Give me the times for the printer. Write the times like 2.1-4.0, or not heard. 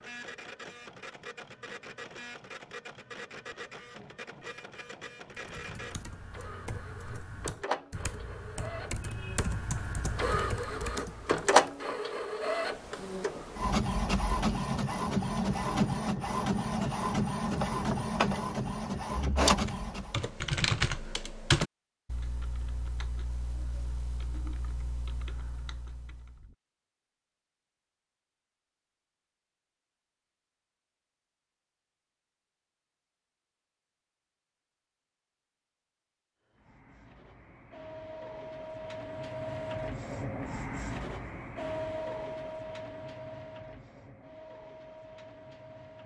0.0-20.2, 36.5-46.0.